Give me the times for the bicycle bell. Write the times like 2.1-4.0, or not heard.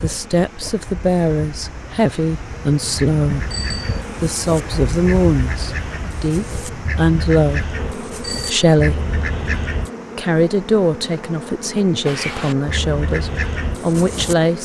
3.5-4.0, 8.2-8.7.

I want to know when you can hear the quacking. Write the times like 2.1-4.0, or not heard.
3.0-9.9, 12.1-14.3.